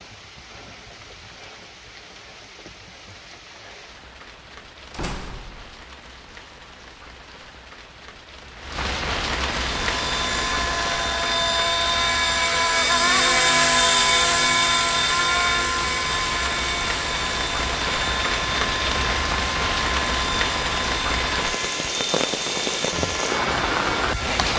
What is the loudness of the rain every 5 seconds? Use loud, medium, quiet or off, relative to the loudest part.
quiet, medium, medium, loud, loud.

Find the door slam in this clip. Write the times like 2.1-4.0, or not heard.
4.9-5.8.